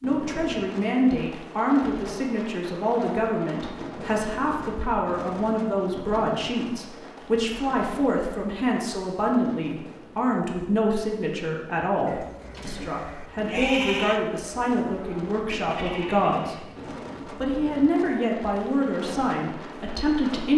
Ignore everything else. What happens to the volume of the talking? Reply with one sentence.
The loudness of the talking stays about the same.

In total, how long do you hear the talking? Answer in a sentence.
You can hear the talking for 20 seconds altogether.